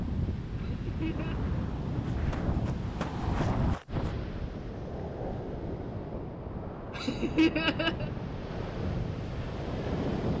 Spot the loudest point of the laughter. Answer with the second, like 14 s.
8 s.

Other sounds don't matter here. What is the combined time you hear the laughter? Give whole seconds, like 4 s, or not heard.
2 s.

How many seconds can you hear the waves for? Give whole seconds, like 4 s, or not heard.
10 s.